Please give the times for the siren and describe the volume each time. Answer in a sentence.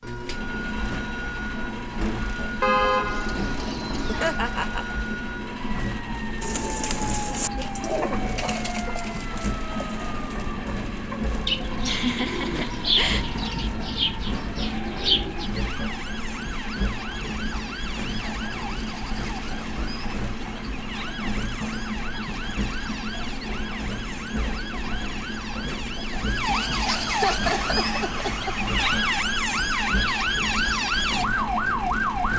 The siren can be heard from 0.0 to 32.3 s, getting louder.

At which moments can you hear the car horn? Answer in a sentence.
The car horn can be heard from 2.6 to 4.4 s.